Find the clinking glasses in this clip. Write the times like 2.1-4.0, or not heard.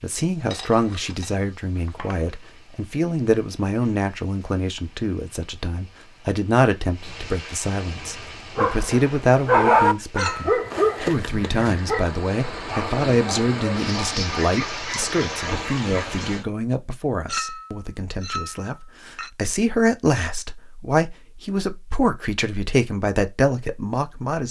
0.5-2.2, 10.2-10.6, 17.2-19.3.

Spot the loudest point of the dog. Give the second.
10 s.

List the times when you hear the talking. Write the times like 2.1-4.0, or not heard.
0.0-24.4.